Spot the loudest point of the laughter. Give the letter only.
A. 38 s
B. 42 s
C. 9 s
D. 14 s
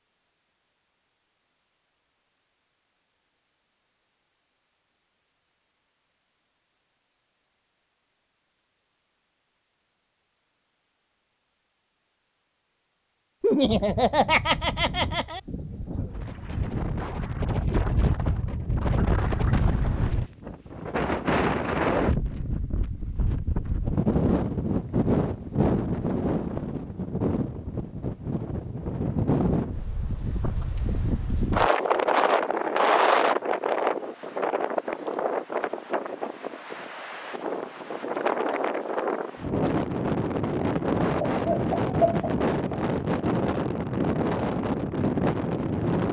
D.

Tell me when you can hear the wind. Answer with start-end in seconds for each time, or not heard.
13.6-46.0.